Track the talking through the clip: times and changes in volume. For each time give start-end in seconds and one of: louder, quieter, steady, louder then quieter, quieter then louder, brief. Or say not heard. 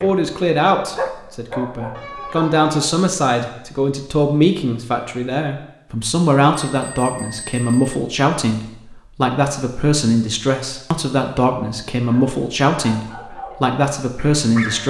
0.0-14.8 steady.